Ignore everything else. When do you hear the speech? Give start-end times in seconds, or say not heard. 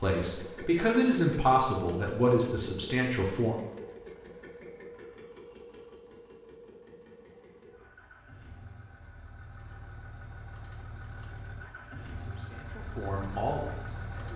0.0-3.5, 12.1-14.3.